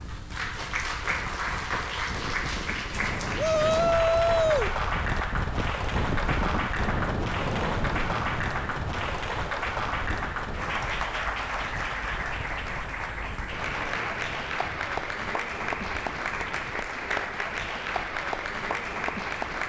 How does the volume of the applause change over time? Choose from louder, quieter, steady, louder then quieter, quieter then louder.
steady.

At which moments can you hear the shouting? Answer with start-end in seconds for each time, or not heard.
3.4-4.8.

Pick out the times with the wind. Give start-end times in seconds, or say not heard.
0.0-19.6.